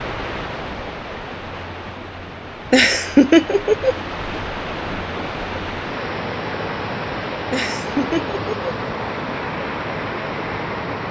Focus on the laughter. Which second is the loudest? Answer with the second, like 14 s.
3 s.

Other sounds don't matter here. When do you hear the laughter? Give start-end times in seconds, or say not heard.
2.7-4.0, 7.5-8.7.